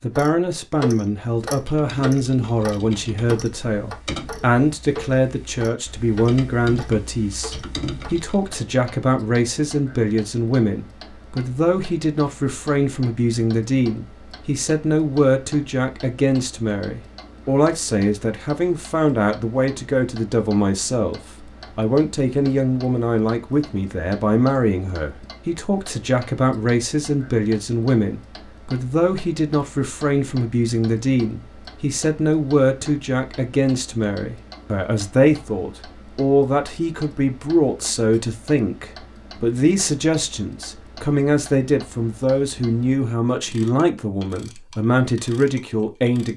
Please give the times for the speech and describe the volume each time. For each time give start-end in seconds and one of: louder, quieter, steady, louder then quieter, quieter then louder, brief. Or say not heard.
0.0-46.3 steady.